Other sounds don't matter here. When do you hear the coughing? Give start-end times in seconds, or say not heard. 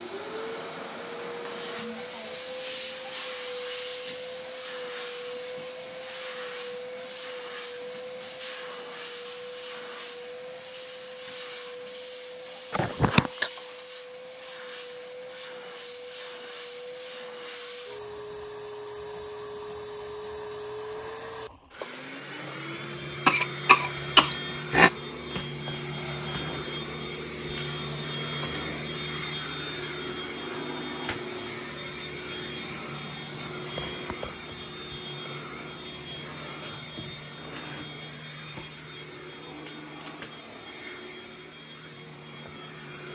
12.7-13.5, 23.2-24.9.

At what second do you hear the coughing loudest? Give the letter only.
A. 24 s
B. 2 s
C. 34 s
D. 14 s
A.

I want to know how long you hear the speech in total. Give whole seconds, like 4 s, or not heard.
not heard.